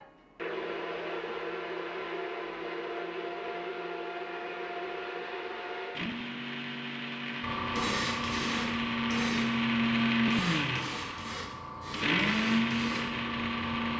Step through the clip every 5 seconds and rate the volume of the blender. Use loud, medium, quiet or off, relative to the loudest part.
medium, loud, loud.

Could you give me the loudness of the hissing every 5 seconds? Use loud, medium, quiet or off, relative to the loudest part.
off, loud, loud.